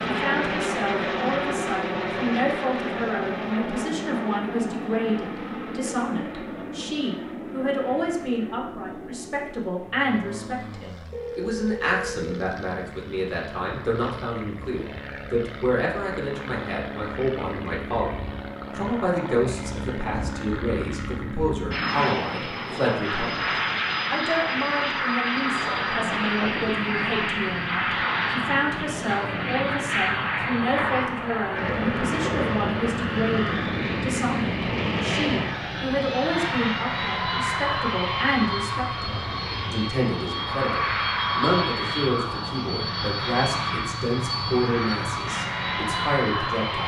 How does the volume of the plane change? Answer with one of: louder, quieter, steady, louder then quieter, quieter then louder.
quieter then louder.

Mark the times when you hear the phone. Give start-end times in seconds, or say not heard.
11.1-12.4.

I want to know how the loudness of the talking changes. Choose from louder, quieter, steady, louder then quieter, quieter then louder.
steady.